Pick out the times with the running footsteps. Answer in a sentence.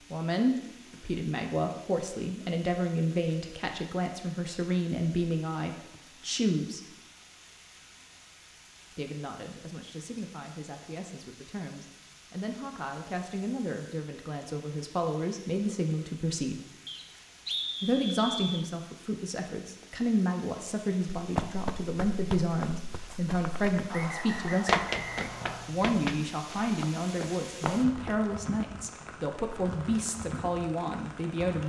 You can hear the running footsteps from 21.1 to 28.3 s.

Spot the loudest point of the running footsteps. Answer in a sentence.
The volume of the running footsteps peaks at 25 seconds.